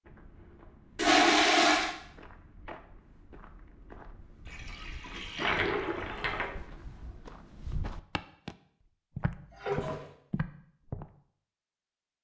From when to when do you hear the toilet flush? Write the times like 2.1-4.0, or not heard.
0.9-1.9, 4.5-6.5, 9.3-10.1.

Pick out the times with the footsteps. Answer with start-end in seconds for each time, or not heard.
0.1-8.6, 9.2-11.1.